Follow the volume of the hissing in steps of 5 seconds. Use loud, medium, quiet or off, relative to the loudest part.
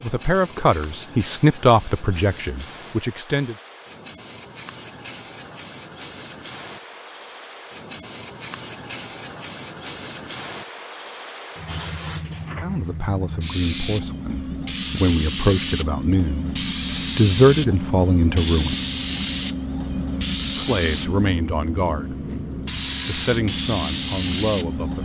quiet, medium, medium, loud, loud.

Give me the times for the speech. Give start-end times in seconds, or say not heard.
0.0-3.5, 12.6-18.8, 20.6-22.1, 23.1-25.0.